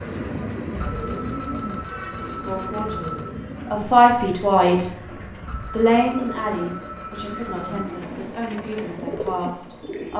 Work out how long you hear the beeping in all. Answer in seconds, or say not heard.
5 s.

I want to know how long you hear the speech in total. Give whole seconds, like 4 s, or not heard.
7 s.